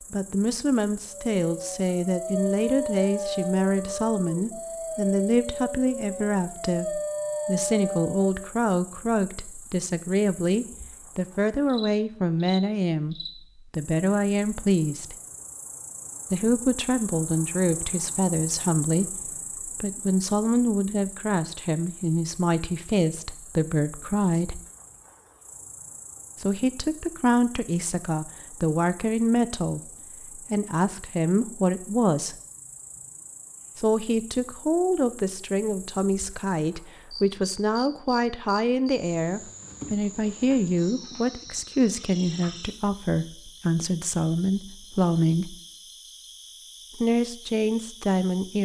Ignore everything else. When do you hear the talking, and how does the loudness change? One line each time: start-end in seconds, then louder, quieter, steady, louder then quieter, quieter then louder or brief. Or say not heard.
0.1-15.2 steady
16.3-24.6 steady
26.4-32.4 steady
33.8-45.5 steady
47.0-48.6 brief.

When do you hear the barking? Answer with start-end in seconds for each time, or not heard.
1.1-8.5.